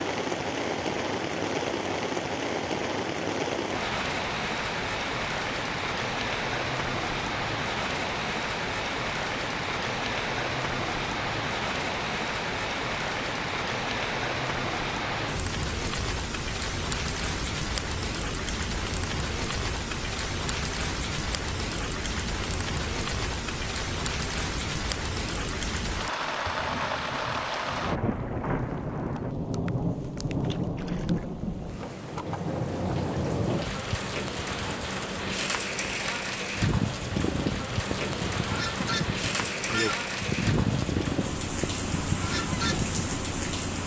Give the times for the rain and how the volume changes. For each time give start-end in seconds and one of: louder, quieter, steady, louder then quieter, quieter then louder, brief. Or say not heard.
0.0-43.8 steady.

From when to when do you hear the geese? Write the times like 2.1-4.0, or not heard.
37.1-43.2.